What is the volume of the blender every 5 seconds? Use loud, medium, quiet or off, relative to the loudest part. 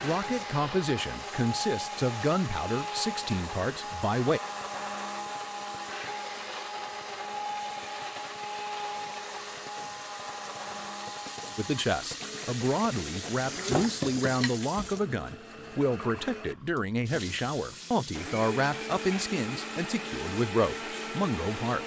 loud, loud, medium, loud, loud.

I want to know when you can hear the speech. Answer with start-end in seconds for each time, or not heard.
0.0-4.4, 11.6-21.8.